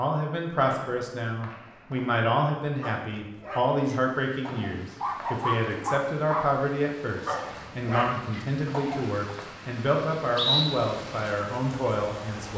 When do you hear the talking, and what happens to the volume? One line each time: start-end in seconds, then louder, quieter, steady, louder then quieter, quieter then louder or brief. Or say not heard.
0.0-12.5 steady.